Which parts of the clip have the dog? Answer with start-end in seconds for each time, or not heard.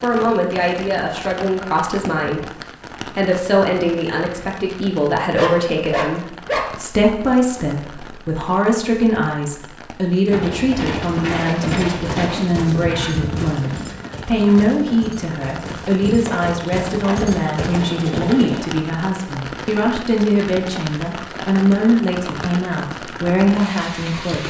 5.3-6.7.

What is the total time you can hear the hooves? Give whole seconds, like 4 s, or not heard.
8 s.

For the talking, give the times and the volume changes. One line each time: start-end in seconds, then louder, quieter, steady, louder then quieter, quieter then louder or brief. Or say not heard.
0.0-24.4 steady.